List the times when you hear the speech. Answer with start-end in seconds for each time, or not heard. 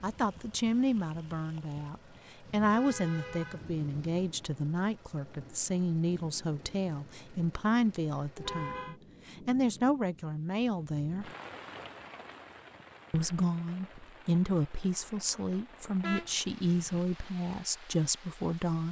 0.0-11.3, 13.1-18.8.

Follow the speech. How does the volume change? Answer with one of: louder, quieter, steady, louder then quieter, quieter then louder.
steady.